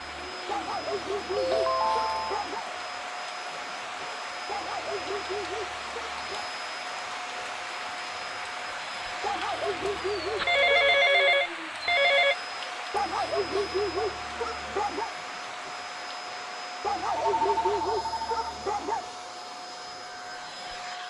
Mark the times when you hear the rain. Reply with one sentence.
The rain can be heard from 0.0 to 17.9 s.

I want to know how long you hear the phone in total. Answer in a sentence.
You can hear the phone for 5 seconds altogether.